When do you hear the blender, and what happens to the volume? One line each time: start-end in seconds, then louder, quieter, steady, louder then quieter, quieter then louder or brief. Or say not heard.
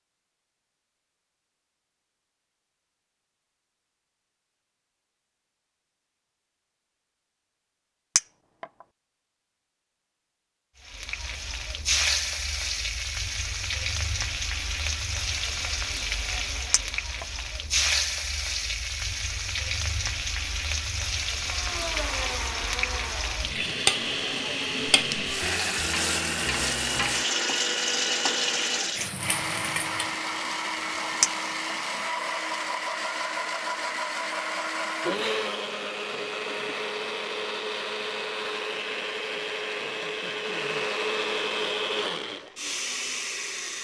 21.4-43.8 steady.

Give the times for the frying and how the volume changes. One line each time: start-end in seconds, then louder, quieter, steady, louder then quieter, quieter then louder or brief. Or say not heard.
10.8-30.1 steady.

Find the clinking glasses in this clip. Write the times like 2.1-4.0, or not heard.
8.2-8.7, 16.7-17.2, 31.2-31.8.